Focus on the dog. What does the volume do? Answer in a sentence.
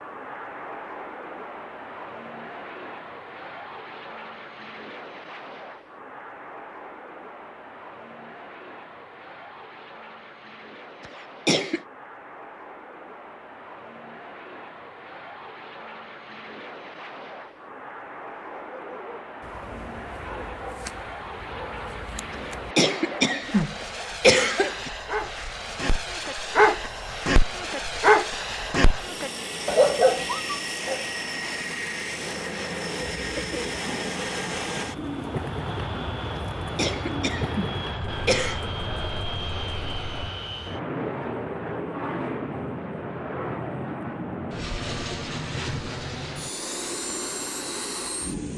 The volume of the dog goes up.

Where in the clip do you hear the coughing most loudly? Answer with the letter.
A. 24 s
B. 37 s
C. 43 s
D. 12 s
A.